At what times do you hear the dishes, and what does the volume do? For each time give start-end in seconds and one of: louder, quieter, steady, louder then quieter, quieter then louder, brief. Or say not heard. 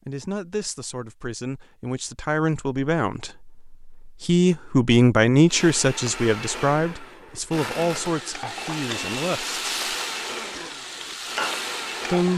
not heard.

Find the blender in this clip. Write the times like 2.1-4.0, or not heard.
5.5-12.3.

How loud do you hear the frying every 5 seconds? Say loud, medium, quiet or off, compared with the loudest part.
off, loud, loud.